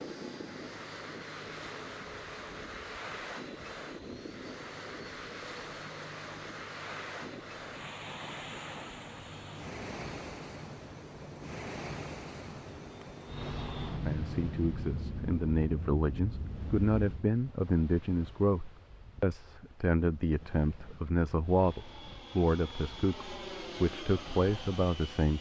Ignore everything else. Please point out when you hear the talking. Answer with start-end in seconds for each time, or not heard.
13.8-25.3.